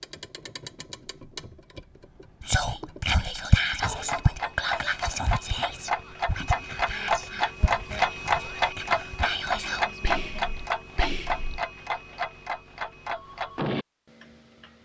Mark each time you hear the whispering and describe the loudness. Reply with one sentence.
You can hear the whispering from 2.4 to 11.6 s, getting quieter.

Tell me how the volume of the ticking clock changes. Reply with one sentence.
The volume of the ticking clock goes up, then down.